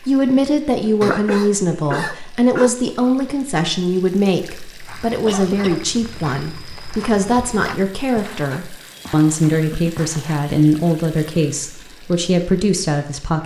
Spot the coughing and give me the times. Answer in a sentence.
You can hear the coughing from 1.0 to 2.7 s, from 5.2 to 5.8 s and from 9.5 to 10.1 s.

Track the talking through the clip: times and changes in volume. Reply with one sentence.
You can hear the talking from 0.0 to 13.4 s, at a steady volume.